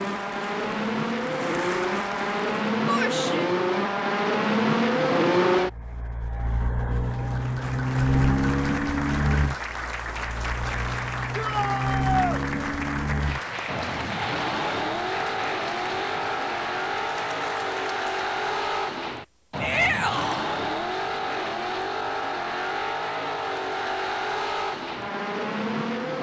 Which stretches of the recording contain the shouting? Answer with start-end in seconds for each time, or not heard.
2.9-3.5, 11.3-12.4, 19.6-20.4.